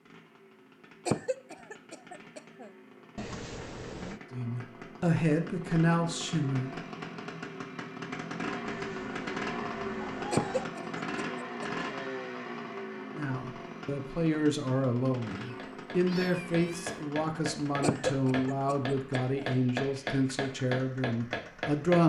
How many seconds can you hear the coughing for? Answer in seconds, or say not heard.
5 s.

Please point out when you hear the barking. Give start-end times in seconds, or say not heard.
not heard.